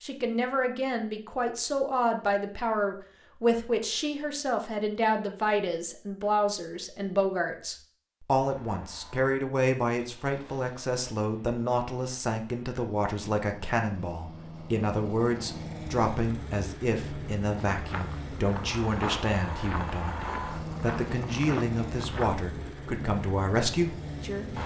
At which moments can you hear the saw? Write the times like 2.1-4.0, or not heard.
not heard.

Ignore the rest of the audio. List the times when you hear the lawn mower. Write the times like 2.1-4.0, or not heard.
8.4-24.6.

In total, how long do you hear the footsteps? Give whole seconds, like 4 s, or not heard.
5 s.